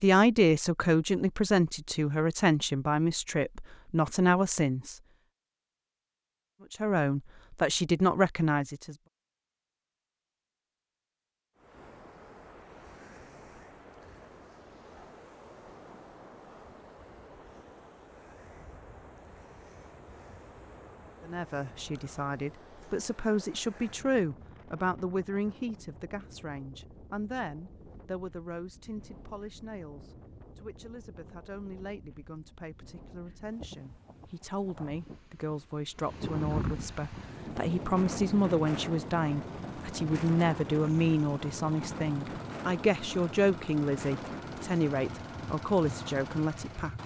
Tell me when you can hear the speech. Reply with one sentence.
You can hear the speech from 0.0 to 5.0 s, from 6.7 to 8.9 s and from 21.2 to 46.9 s.